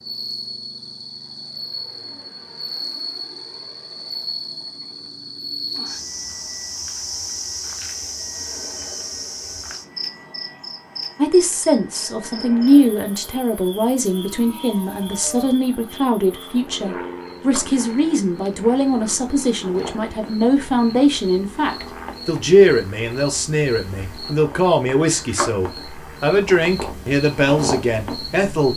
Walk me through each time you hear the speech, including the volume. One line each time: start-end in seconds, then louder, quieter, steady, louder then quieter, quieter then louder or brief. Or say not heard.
11.2-28.7 steady.